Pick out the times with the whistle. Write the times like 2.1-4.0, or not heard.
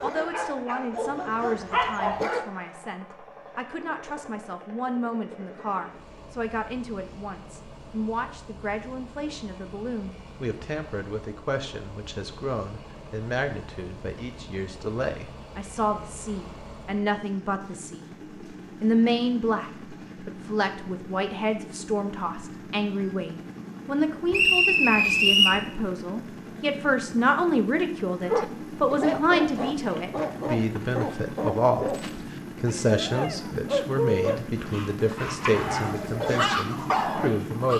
24.3-25.6.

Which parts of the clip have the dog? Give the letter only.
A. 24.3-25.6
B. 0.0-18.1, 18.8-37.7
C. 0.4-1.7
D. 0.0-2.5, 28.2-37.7
D.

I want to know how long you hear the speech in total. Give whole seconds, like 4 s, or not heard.
37 s.